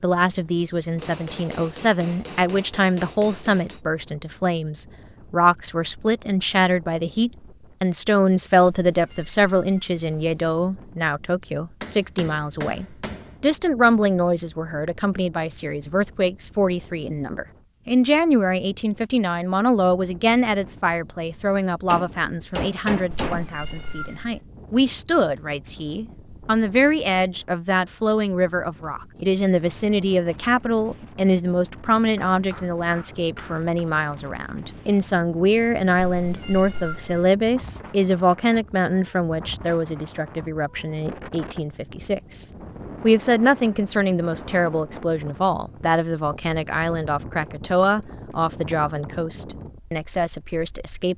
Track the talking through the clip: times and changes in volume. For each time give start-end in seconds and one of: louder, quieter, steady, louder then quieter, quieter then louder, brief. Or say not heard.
0.0-51.1 steady.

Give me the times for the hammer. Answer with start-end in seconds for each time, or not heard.
0.9-3.8, 11.8-13.3, 21.9-23.6, 32.3-33.9, 47.1-48.5.